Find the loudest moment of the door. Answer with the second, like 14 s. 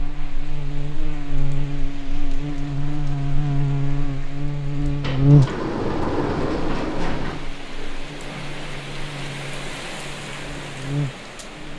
6 s.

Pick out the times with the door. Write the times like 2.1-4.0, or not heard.
5.0-7.5.